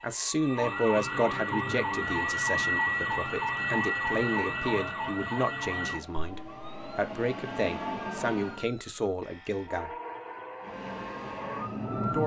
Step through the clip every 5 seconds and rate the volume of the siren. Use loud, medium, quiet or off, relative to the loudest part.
loud, medium, medium.